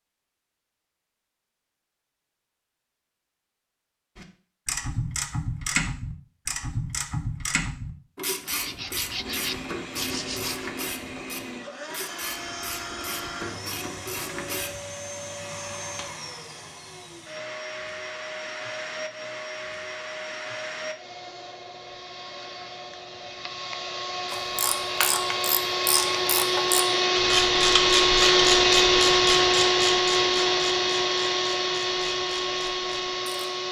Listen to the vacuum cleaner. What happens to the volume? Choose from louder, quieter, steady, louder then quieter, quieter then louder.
louder.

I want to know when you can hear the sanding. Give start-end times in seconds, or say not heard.
8.5-10.7.